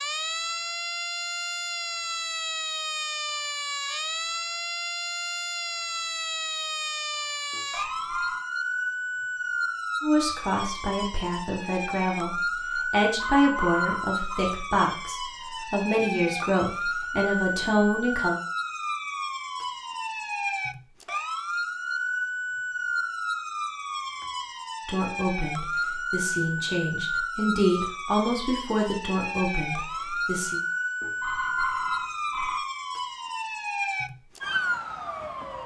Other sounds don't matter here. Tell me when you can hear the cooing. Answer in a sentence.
The cooing can't be heard in this clip.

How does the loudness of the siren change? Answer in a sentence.
The volume of the siren stays about the same.